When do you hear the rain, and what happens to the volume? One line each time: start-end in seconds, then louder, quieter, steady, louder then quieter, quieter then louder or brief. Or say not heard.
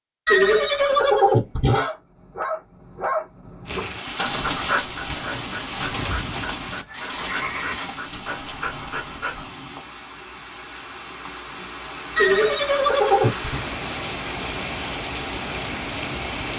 3.6-16.5 quieter then louder.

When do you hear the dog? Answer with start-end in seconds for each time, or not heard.
1.6-9.4.